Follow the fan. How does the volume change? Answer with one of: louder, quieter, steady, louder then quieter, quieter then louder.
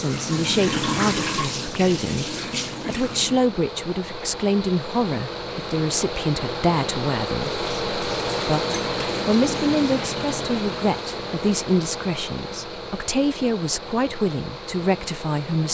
louder then quieter.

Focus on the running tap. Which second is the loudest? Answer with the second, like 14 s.
1 s.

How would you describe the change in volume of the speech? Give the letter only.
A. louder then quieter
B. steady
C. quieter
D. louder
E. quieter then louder
B.